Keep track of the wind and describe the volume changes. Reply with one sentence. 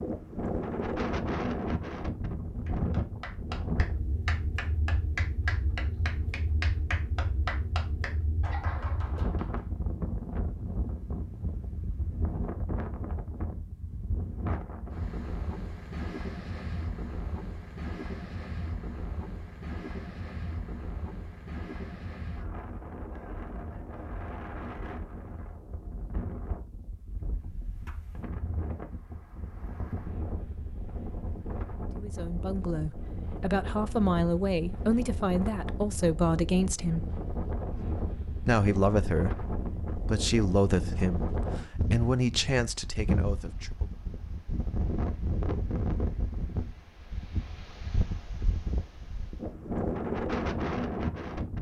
The volume of the wind goes down, then up.